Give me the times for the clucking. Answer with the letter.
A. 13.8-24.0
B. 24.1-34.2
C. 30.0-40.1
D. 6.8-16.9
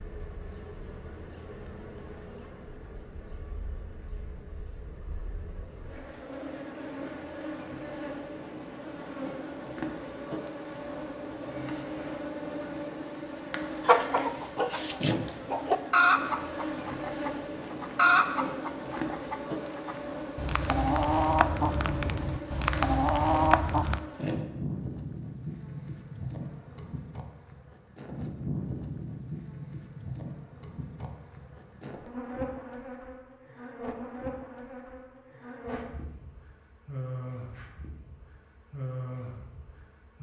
A.